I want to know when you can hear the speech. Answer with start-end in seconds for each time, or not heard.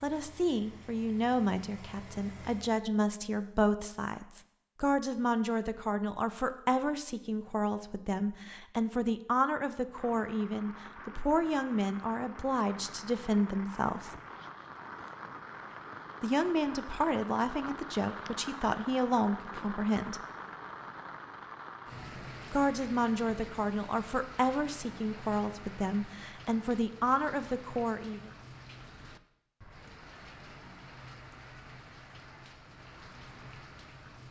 0.0-14.2, 16.2-20.2, 22.5-28.3.